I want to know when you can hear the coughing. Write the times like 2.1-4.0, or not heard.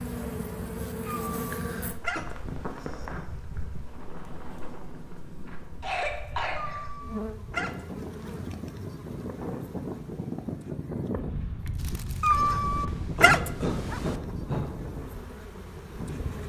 2.1-3.6, 5.8-6.8, 13.2-14.7.